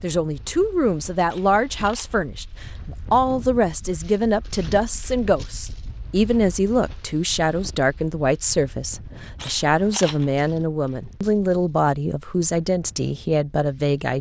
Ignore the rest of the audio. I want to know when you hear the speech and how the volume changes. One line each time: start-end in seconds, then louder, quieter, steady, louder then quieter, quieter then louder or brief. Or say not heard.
0.0-14.1 steady.